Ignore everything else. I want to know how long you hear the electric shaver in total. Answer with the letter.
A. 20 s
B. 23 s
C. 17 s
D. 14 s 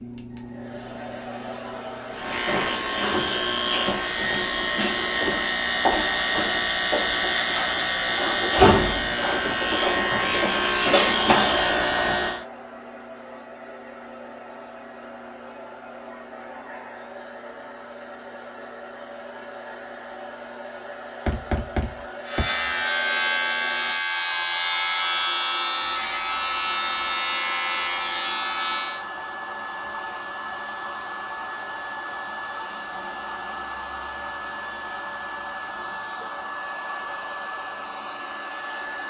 C.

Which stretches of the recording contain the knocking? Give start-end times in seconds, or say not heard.
21.2-22.4.